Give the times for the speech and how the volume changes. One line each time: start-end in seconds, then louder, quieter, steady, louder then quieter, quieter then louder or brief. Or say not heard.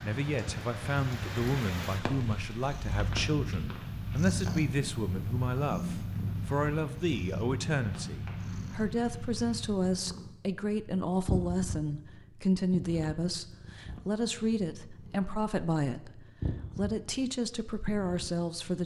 0.0-18.8 steady.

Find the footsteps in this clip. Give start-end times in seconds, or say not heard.
not heard.